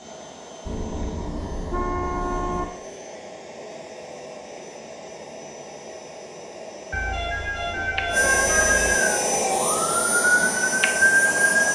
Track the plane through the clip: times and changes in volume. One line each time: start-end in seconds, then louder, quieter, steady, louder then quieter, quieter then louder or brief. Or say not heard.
0.0-11.7 louder.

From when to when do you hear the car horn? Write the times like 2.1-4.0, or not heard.
0.7-2.6, 6.9-8.9.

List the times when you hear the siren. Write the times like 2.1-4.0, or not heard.
7.8-11.7.